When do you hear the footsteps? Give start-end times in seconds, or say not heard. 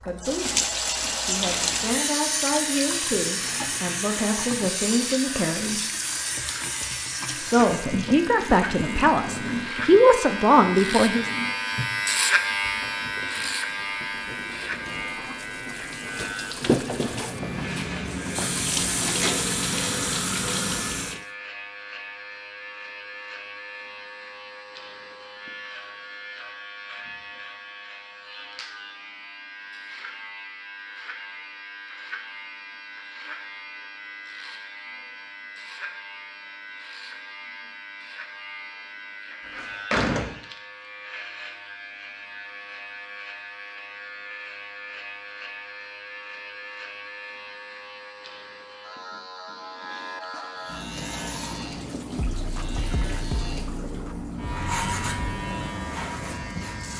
not heard.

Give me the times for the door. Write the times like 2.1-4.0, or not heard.
39.5-40.4.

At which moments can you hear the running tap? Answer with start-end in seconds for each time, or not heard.
0.0-21.2, 50.5-56.9.